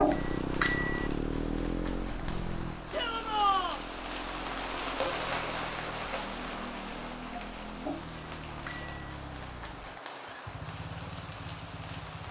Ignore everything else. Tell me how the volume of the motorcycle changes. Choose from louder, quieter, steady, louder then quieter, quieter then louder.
quieter.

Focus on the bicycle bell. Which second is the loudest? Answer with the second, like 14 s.
1 s.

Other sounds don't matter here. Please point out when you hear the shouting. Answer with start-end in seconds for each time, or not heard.
2.9-3.8.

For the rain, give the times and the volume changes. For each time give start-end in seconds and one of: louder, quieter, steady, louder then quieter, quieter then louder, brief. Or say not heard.
0.0-12.2 louder then quieter.